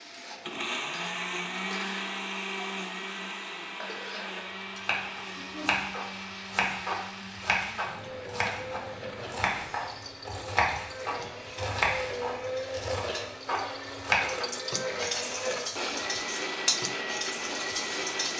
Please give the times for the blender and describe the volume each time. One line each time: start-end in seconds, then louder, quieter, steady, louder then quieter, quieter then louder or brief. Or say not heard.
0.0-18.3 quieter then louder.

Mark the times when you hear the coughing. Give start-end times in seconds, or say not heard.
not heard.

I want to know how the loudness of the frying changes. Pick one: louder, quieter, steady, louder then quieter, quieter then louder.
louder.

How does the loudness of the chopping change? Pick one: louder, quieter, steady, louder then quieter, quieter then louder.
steady.